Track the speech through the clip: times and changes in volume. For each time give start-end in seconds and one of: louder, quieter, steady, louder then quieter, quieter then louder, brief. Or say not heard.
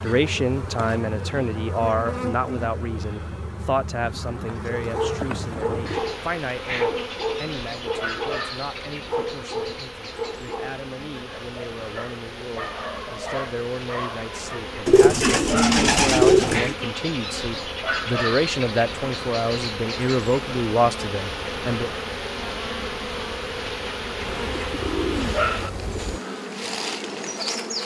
0.0-21.9 quieter then louder.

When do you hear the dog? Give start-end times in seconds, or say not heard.
4.8-14.6.